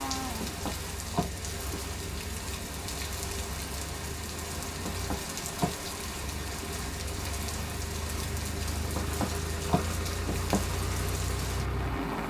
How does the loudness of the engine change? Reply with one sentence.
The volume of the engine goes up.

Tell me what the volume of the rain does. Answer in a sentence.
The loudness of the rain stays about the same.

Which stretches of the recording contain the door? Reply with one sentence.
You can hear the door from 0.3 to 1.8 s, from 4.8 to 5.8 s and from 8.9 to 10.7 s.